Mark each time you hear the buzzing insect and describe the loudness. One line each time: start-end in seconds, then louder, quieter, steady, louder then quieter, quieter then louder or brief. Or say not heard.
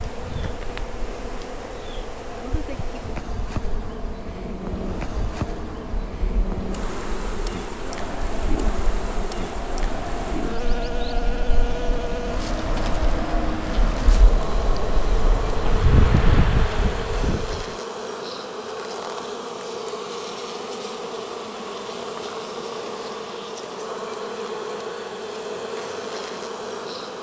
0.0-27.1 steady.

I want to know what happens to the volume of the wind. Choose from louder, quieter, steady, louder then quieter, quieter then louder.
louder.